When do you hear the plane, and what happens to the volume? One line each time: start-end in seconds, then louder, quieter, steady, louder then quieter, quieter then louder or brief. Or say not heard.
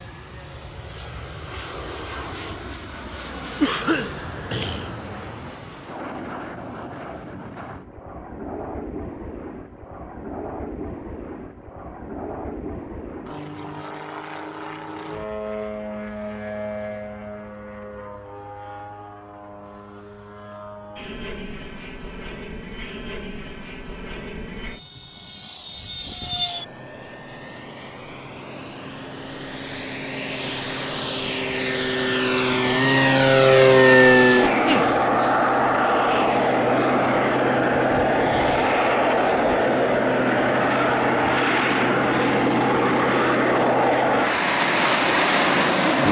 0.0-46.0 louder.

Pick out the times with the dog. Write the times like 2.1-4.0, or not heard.
not heard.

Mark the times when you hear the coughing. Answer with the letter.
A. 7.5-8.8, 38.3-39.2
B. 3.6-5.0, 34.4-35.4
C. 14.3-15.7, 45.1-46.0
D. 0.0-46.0
B.